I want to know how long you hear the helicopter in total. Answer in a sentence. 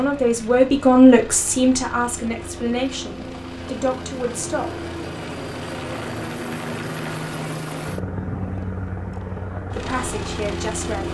The helicopter can be heard for 11 seconds in total.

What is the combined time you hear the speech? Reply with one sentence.
The speech can be heard for 6 seconds in total.